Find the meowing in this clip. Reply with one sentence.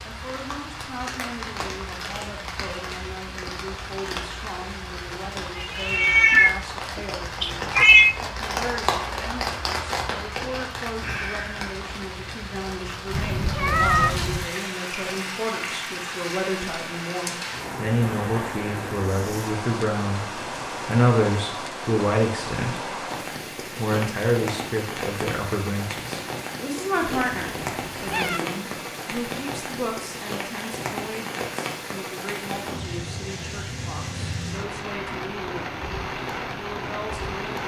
The meowing can be heard from 5.5 to 8.2 s, from 13.1 to 14.5 s and from 27.0 to 28.4 s.